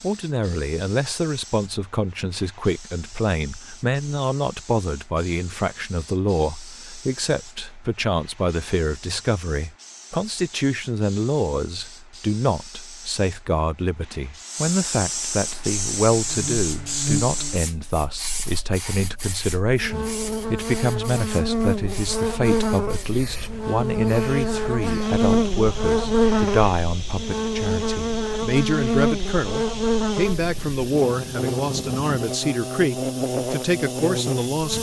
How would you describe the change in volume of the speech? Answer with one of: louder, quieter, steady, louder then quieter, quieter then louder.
steady.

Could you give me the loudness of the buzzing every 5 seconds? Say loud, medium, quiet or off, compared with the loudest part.
off, off, off, medium, loud, loud, medium.